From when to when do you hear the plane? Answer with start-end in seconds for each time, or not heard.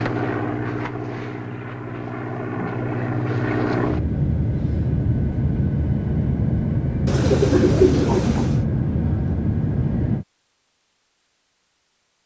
0.0-10.2.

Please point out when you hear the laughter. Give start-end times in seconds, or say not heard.
not heard.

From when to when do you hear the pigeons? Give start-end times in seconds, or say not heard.
7.0-8.7.